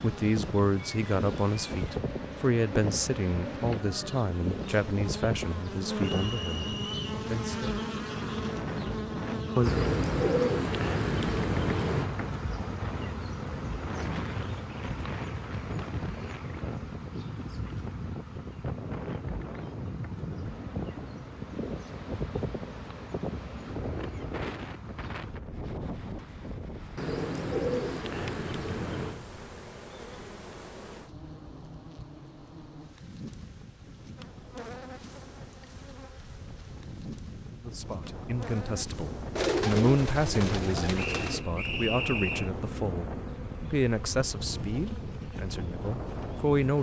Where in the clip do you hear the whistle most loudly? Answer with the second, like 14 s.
42 s.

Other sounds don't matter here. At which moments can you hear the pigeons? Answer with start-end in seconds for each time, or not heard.
9.7-12.1, 26.9-29.2, 39.4-41.5.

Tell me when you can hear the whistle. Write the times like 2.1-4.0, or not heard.
6.0-7.2, 41.0-42.5.